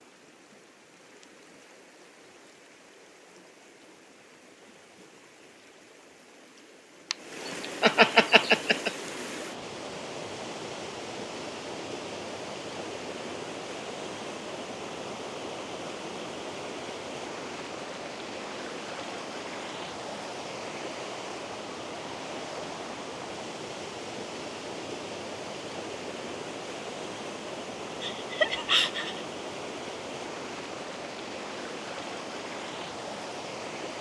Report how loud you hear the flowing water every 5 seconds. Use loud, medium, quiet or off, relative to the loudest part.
quiet, loud, loud, loud, loud, loud, loud.